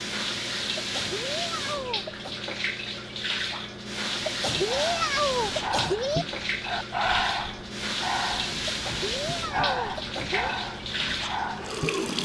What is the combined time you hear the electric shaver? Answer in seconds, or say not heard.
not heard.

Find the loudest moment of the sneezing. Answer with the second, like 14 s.
5 s.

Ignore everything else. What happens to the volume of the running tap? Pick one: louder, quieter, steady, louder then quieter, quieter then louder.
steady.